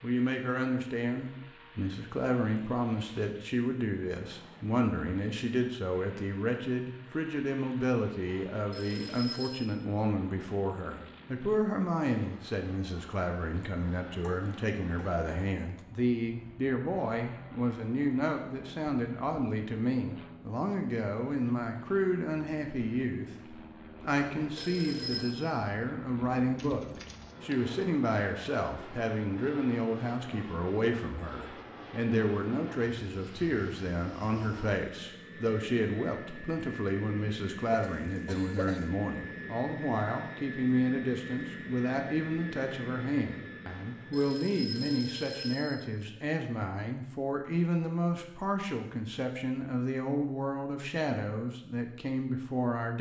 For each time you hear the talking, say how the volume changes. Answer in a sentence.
The talking can be heard from 0.0 to 52.9 s, at a steady volume.